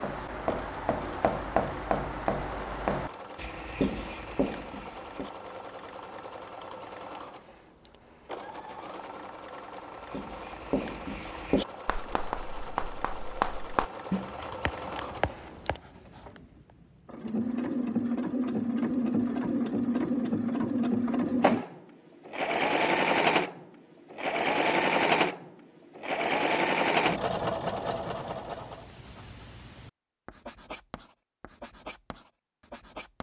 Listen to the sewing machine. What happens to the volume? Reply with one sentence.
The loudness of the sewing machine goes up.